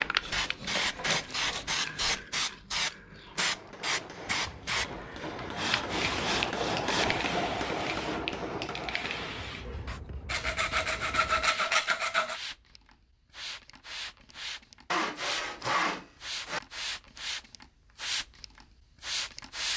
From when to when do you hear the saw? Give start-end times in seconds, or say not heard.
0.2-2.1, 5.5-7.2, 10.2-12.4, 14.9-16.6.